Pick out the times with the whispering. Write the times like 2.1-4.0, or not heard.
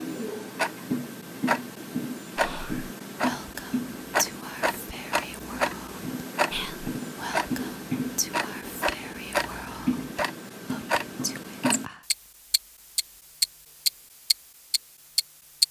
2.4-12.1.